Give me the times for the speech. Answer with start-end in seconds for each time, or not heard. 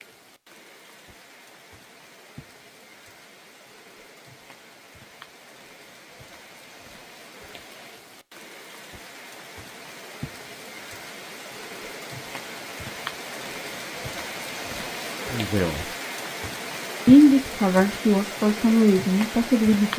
15.3-15.8, 17.1-19.9.